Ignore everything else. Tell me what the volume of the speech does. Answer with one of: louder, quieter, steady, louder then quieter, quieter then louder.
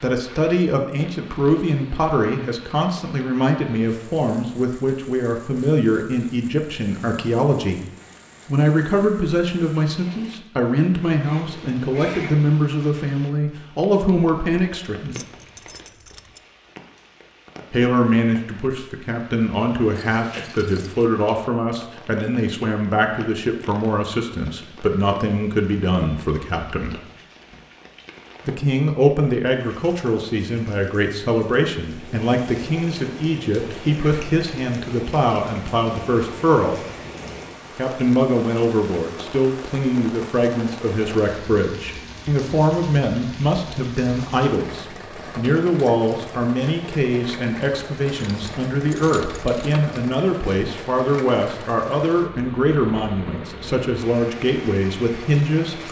steady.